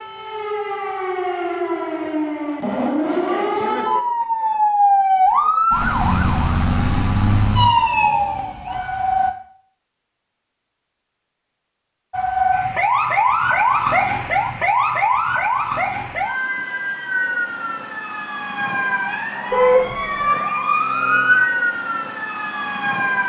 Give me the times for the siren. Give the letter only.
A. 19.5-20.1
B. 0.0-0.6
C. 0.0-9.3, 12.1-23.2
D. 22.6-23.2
C.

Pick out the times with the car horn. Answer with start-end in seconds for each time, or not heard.
19.5-20.1.